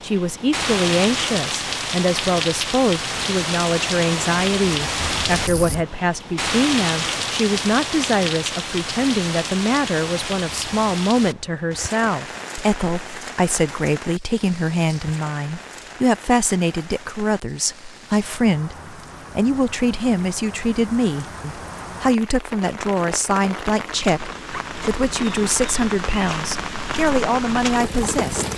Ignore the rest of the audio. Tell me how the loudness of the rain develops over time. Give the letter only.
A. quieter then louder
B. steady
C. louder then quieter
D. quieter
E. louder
A.